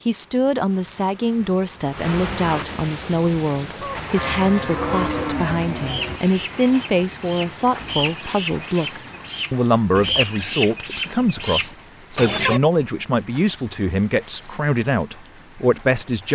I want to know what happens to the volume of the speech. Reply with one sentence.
The loudness of the speech stays about the same.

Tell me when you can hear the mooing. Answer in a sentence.
You can hear the mooing from 4.2 to 6.2 s.